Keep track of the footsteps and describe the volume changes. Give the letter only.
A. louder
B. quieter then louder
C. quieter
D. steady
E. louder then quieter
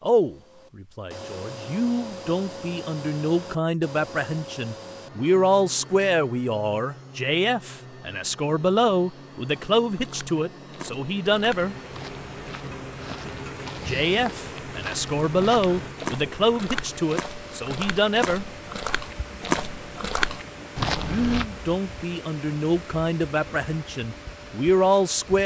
A.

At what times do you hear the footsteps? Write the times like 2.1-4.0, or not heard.
9.4-21.4.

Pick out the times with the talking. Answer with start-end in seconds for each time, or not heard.
0.0-11.8, 13.8-18.4, 20.9-25.4.